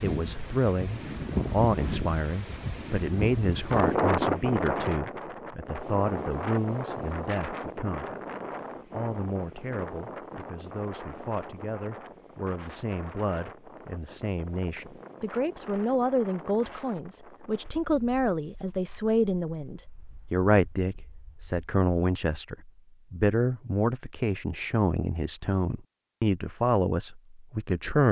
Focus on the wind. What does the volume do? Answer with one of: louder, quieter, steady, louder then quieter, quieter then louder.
quieter.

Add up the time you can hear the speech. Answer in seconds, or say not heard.
27 s.